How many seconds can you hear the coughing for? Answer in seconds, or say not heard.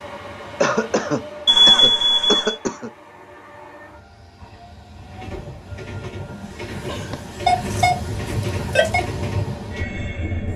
3 s.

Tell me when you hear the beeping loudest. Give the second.
2 s.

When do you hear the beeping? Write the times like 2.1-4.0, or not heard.
1.4-2.5, 7.5-9.0.